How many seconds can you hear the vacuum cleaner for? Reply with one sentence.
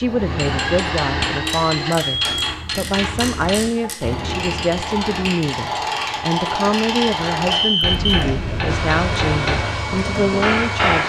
The vacuum cleaner can be heard for 5 seconds in total.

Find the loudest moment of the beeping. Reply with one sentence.
The volume of the beeping peaks at 8 seconds.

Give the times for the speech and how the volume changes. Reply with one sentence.
You can hear the speech from 0.0 to 11.0 s, at a steady volume.